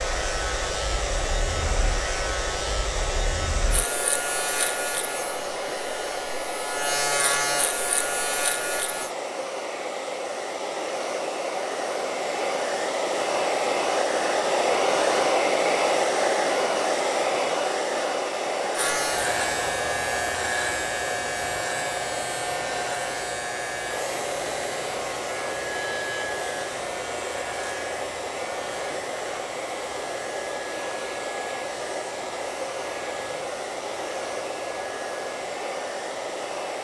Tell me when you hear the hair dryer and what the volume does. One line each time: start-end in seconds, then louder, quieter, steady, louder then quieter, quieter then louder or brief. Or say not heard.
0.0-36.8 louder then quieter.